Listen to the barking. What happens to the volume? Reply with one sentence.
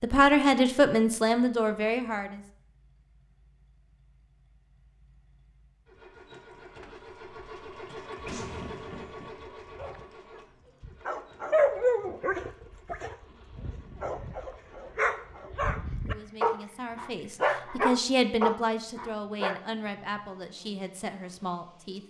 The loudness of the barking goes down, then up.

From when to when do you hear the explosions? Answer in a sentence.
You can hear the explosions from 8.2 to 9.3 s.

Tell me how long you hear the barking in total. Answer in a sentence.
You can hear the barking for 10 seconds altogether.